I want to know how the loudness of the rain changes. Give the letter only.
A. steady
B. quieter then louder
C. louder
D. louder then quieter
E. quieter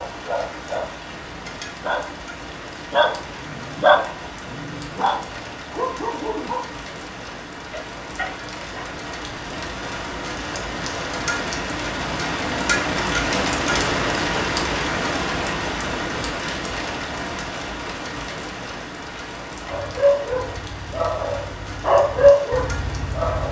D.